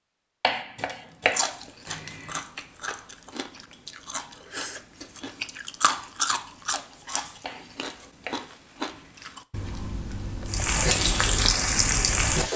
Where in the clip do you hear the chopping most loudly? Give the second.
1 s.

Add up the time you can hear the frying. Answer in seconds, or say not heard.
2 s.